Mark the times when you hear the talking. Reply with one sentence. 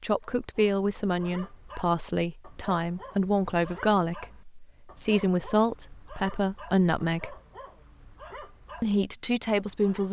The talking can be heard from 0.0 to 7.3 s and from 8.8 to 10.0 s.